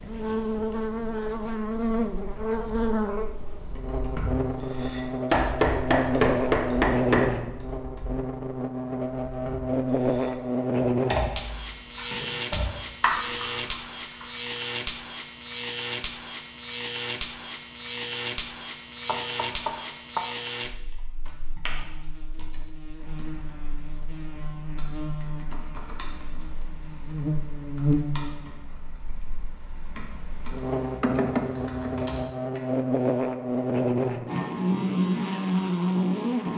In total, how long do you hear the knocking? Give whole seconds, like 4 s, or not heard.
4 s.